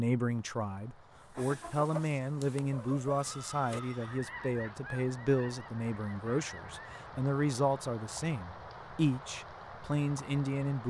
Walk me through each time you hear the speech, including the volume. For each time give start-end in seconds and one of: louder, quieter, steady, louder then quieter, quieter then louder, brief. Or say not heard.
0.0-10.8 steady.